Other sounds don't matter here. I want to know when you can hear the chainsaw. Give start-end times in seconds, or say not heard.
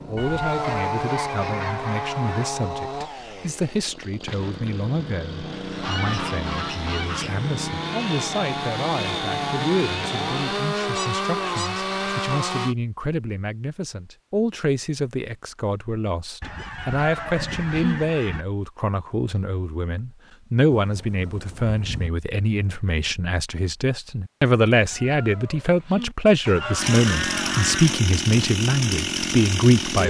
0.0-12.8, 26.8-30.0.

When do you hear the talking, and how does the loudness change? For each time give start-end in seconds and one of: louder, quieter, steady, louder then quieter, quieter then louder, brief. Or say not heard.
0.1-30.0 louder.